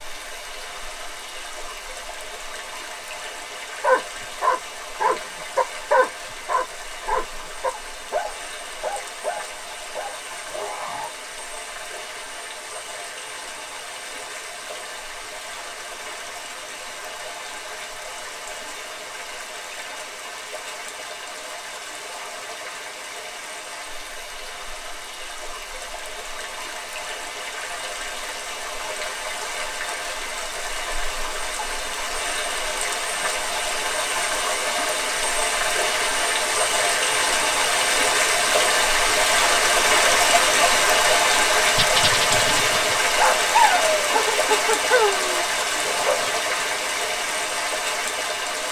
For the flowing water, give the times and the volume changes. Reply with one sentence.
You can hear the flowing water from 0.0 to 48.6 s, getting louder.